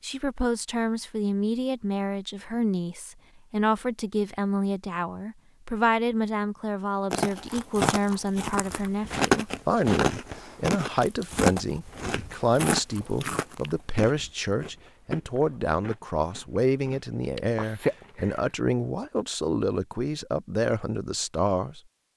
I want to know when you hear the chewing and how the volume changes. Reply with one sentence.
The chewing can be heard from 7.1 to 18.6 s, getting quieter then louder.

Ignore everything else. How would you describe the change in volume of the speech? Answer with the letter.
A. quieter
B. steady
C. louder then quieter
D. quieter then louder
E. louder
B.